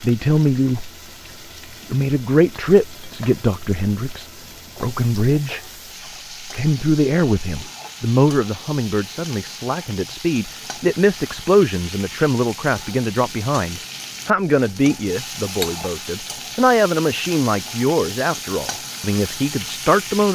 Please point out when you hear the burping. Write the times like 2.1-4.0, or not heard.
not heard.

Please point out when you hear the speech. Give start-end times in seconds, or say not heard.
0.0-0.9, 1.9-5.6, 6.5-20.2.